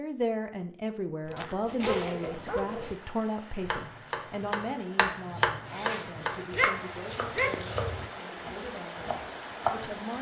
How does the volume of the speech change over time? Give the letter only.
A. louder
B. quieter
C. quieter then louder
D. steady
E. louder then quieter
B.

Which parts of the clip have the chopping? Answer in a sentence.
You can hear the chopping from 3.6 to 10.1 s.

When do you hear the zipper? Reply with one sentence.
The zipper can be heard from 1.4 to 3.0 s and from 5.7 to 6.5 s.